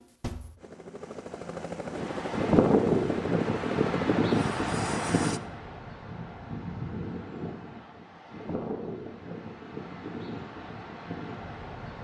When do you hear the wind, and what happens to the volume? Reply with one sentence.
The wind can be heard from 1.9 to 11.9 s, getting quieter.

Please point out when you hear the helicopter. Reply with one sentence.
You can hear the helicopter from 0.0 to 5.4 s.